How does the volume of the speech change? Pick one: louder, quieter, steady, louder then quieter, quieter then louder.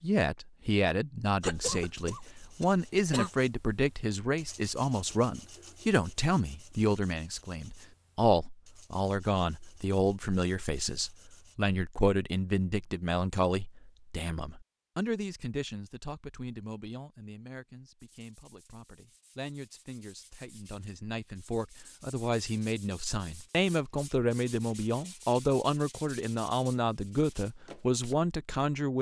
quieter then louder.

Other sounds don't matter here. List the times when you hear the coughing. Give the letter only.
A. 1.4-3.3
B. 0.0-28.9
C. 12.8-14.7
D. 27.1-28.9
A.